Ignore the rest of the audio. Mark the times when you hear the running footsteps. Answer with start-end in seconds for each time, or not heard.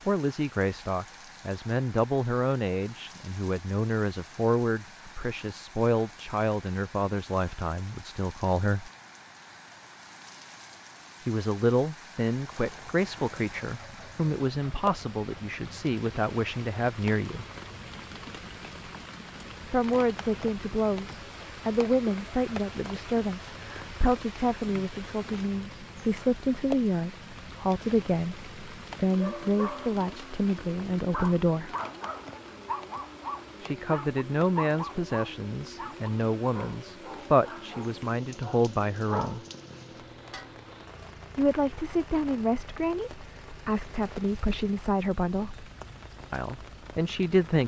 not heard.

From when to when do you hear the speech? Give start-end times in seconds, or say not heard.
0.1-8.9, 11.2-17.4, 19.7-31.7, 33.6-39.4, 41.4-45.6, 46.3-47.6.